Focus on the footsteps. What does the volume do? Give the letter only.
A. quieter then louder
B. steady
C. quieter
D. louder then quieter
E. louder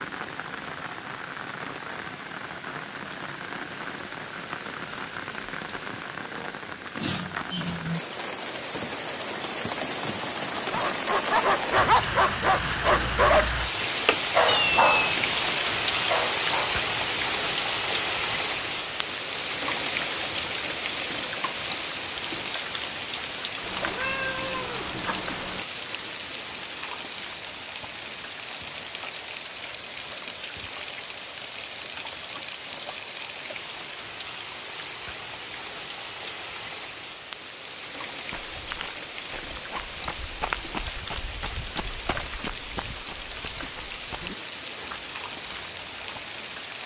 D.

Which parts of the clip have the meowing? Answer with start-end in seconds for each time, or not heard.
14.4-15.4, 23.6-25.6.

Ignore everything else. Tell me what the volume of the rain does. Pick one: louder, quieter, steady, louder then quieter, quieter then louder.
louder then quieter.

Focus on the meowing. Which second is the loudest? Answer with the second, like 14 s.
15 s.